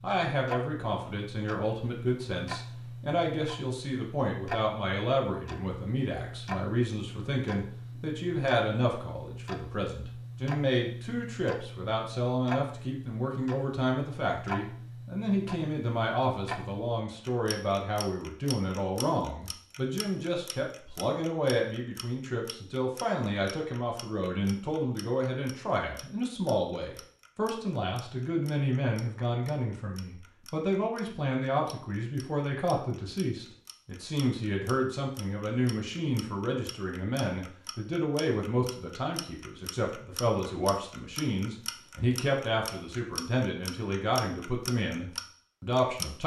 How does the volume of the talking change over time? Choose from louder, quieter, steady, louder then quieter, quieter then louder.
steady.